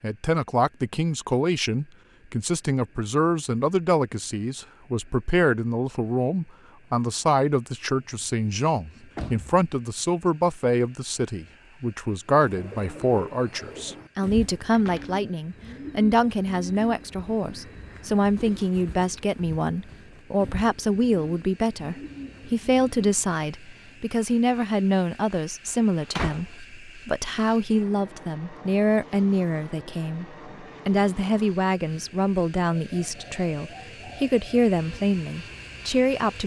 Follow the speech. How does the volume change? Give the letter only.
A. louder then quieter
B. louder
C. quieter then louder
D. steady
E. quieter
D.